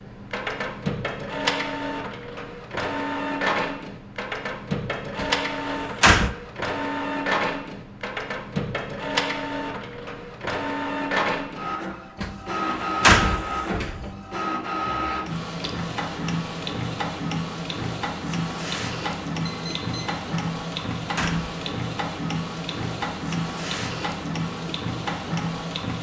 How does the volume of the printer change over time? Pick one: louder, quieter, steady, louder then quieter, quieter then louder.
steady.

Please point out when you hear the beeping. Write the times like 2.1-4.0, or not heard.
19.4-20.2.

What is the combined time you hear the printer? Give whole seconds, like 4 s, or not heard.
26 s.